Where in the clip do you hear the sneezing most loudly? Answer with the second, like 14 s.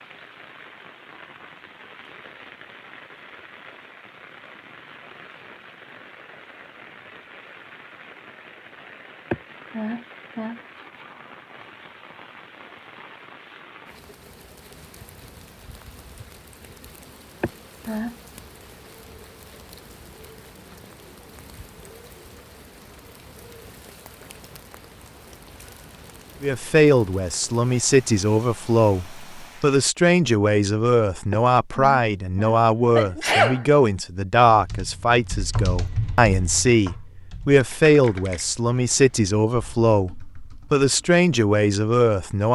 33 s.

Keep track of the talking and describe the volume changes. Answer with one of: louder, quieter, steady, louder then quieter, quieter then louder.
steady.